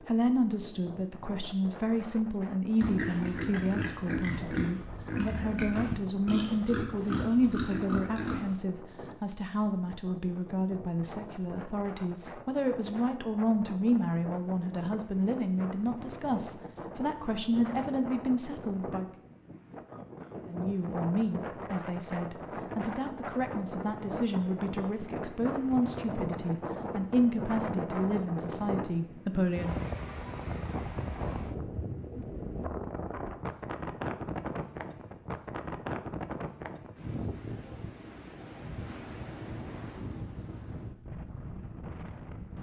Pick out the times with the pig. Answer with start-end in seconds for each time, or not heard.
2.8-8.6.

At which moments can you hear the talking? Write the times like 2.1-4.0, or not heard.
0.0-19.1, 20.4-29.8.